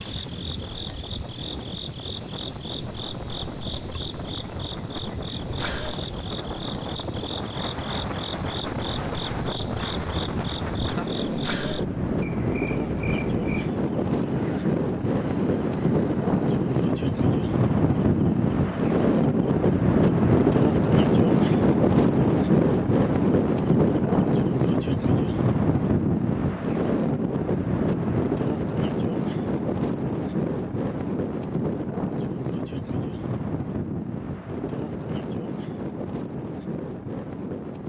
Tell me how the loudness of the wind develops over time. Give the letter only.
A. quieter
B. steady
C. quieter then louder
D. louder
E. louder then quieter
E.